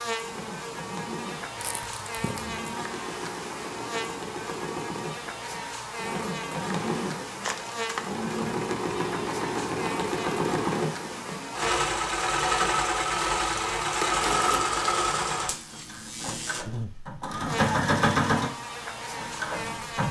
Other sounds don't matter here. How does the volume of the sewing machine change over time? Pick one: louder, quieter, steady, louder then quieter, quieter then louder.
louder.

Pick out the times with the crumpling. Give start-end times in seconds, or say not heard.
1.6-2.6, 7.4-8.2, 13.9-14.8.